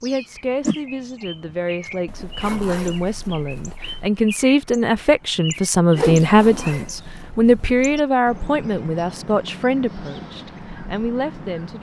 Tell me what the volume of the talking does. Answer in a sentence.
The volume of the talking goes up, then down.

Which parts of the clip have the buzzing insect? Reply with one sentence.
The buzzing insect can't be heard in this clip.